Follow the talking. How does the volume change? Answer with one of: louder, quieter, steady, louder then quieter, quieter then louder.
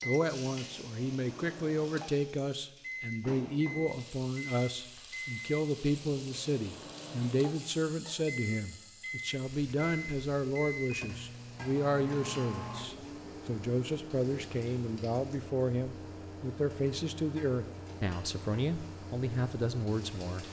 steady.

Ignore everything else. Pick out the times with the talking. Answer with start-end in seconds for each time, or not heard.
0.0-20.4.